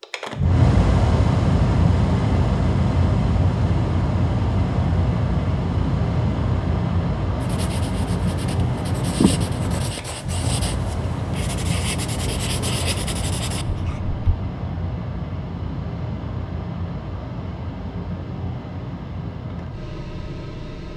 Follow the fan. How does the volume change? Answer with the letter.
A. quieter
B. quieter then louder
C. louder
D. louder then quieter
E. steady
A.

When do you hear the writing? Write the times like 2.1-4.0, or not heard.
7.4-14.2.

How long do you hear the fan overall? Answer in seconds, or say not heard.
21 s.